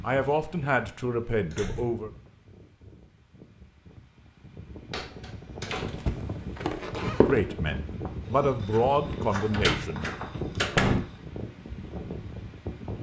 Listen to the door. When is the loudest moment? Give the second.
11 s.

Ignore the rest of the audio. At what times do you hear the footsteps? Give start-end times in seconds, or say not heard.
5.7-11.2.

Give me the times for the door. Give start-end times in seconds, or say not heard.
1.5-2.1, 4.9-6.2, 9.1-11.0.